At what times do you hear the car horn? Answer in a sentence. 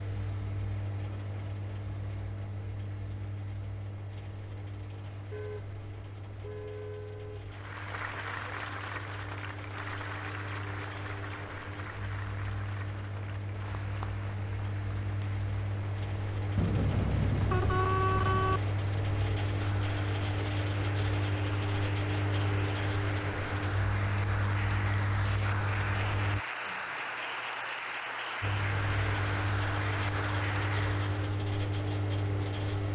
The car horn can be heard from 5.3 to 7.5 s and from 16.6 to 18.6 s.